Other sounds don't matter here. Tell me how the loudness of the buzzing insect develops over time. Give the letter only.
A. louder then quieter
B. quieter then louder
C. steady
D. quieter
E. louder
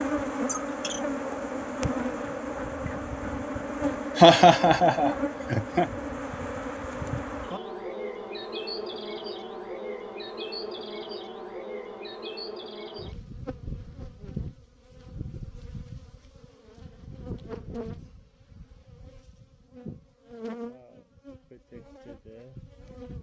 D.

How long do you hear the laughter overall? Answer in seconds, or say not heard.
2 s.